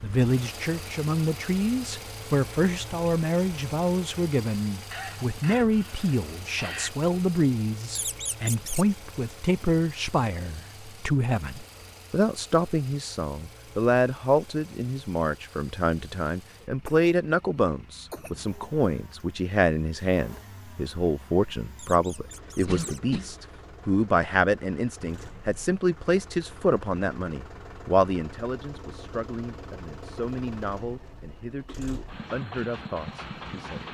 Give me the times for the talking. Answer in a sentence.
The talking can be heard from 0.0 to 33.8 s.